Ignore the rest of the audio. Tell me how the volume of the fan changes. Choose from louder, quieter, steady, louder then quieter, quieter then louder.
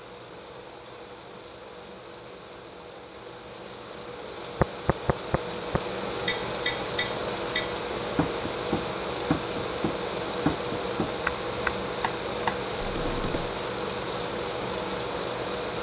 louder.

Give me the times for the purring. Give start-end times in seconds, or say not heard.
not heard.